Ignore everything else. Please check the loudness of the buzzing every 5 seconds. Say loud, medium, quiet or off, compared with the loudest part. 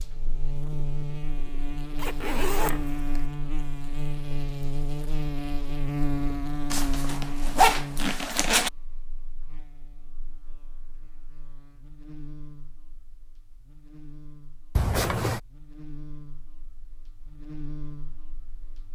loud, loud, quiet, medium.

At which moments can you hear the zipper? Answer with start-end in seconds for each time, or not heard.
1.9-3.2, 6.7-8.7, 14.8-15.4.